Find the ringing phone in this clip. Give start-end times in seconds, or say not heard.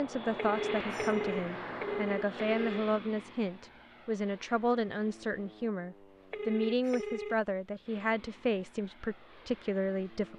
0.3-2.9, 6.3-7.3.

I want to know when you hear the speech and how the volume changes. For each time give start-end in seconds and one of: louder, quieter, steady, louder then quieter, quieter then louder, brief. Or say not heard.
0.0-10.3 steady.